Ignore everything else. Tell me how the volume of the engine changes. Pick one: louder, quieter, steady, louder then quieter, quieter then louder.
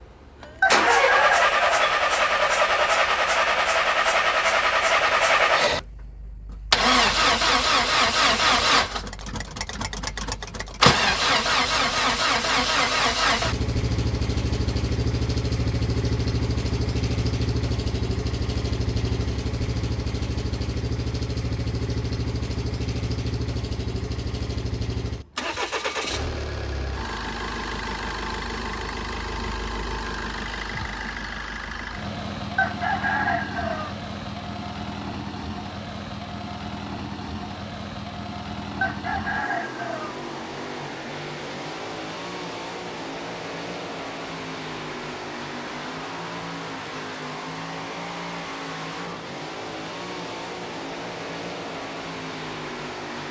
quieter.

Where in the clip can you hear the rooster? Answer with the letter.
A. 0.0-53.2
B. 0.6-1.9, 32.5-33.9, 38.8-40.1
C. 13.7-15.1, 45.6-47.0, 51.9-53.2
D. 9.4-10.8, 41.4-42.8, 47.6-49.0
B.